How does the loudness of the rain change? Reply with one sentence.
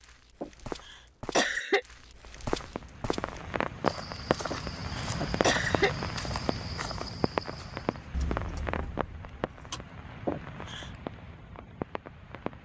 The loudness of the rain goes down.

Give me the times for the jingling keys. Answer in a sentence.
You can hear the jingling keys from 8.1 to 9.9 s.